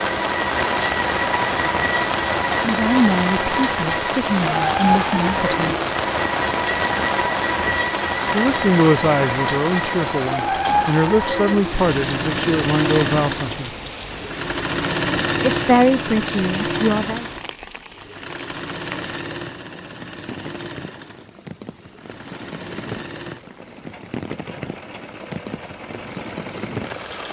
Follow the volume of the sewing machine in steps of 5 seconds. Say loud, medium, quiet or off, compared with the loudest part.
loud, loud, loud, loud, quiet, quiet.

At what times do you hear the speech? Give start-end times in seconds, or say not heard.
2.6-5.8, 8.3-13.7, 15.5-17.2.